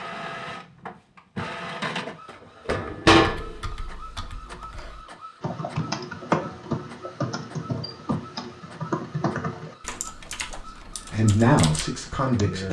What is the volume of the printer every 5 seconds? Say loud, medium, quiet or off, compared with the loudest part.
loud, quiet, medium.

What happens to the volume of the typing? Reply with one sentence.
The volume of the typing goes up, then down.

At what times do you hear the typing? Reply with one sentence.
You can hear the typing from 3.2 to 12.4 s.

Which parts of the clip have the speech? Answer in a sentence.
You can hear the speech from 11.1 to 12.6 s.